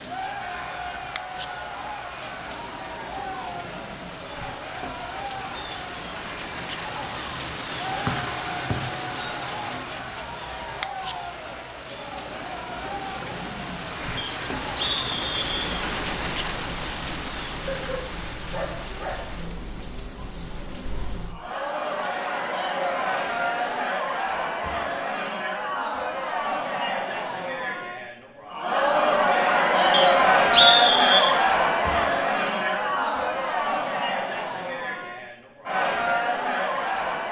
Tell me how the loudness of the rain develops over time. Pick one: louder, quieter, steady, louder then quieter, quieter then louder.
louder then quieter.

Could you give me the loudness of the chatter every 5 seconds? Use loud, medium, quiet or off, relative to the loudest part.
quiet, quiet, quiet, quiet, medium, loud, loud, medium.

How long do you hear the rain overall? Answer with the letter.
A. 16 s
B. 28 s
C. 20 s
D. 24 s
D.